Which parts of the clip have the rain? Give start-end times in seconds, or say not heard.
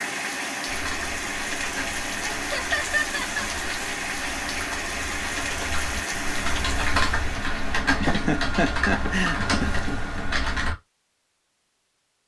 0.0-10.2.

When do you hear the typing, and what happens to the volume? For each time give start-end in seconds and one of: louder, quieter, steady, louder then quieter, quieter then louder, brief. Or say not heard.
0.7-10.8 louder.